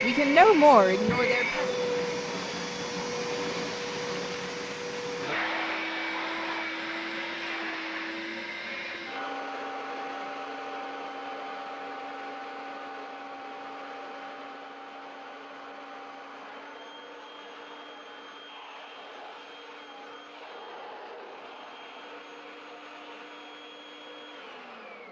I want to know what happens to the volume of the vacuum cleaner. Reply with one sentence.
The loudness of the vacuum cleaner goes down.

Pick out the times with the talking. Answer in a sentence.
You can hear the talking from 0.0 to 1.8 s.